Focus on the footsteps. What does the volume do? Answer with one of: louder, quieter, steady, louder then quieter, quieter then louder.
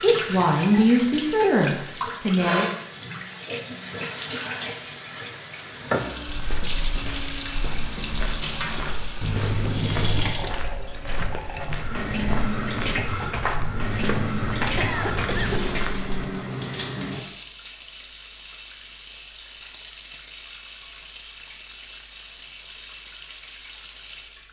louder.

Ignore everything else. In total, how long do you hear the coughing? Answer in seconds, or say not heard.
3 s.